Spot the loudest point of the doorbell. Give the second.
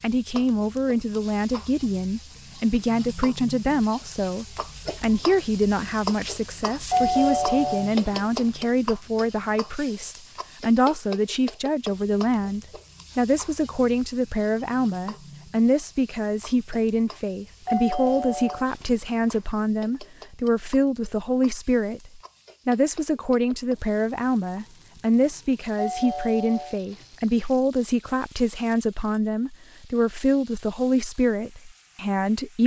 7 s.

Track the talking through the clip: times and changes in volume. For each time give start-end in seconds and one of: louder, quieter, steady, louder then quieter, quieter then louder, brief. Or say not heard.
0.0-32.6 steady.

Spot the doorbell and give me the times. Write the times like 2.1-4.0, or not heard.
6.9-8.2, 17.6-19.4, 25.8-27.5.